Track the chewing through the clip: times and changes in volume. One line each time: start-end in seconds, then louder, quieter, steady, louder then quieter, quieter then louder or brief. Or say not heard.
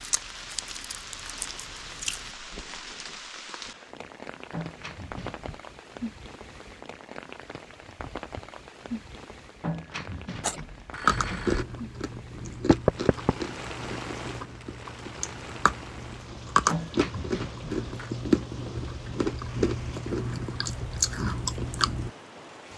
0.0-2.4 brief
10.4-22.1 quieter then louder.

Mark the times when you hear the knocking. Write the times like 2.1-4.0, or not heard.
12.7-13.3.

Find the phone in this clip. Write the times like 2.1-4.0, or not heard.
4.5-5.6, 9.6-11.7, 16.6-18.1.